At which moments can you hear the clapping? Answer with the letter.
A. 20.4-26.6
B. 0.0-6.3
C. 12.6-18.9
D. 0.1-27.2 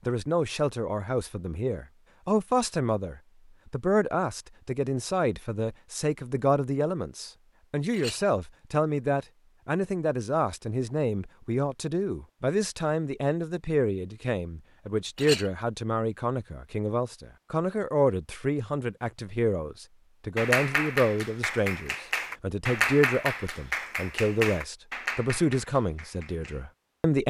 A.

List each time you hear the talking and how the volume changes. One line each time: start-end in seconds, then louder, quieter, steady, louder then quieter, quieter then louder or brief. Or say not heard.
0.1-27.2 steady.